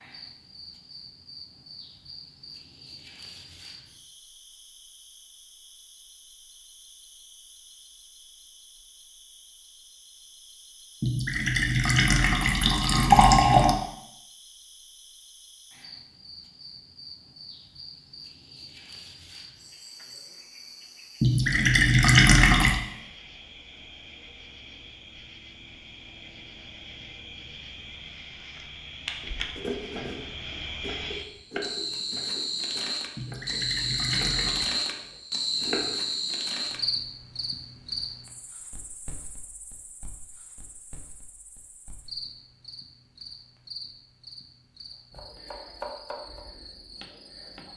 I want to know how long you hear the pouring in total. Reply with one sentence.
You can hear the pouring for 6 seconds altogether.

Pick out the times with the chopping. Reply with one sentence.
You can hear the chopping from 29.2 to 36.0 s and from 45.1 to 47.7 s.